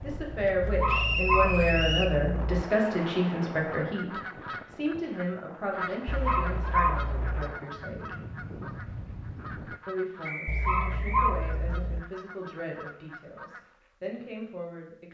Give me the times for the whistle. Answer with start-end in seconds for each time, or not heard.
0.8-2.1, 10.2-11.2.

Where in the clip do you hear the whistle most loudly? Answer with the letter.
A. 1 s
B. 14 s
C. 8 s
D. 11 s
A.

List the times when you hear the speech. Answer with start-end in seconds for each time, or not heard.
0.0-8.2, 9.8-15.0.